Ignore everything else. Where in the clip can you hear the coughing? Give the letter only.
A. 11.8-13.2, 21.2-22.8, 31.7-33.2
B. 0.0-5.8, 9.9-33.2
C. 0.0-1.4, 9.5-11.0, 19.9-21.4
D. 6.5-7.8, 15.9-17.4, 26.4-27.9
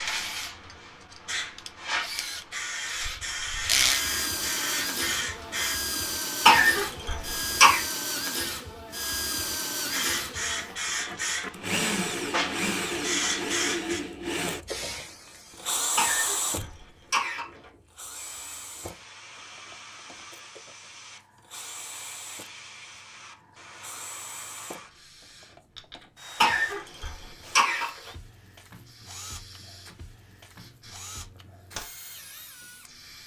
D.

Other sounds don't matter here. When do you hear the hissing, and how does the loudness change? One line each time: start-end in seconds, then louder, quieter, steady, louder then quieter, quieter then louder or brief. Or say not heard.
0.0-5.8 louder
9.9-33.2 quieter.